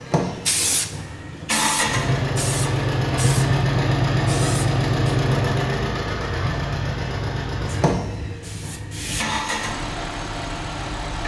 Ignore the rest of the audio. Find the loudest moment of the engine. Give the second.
4 s.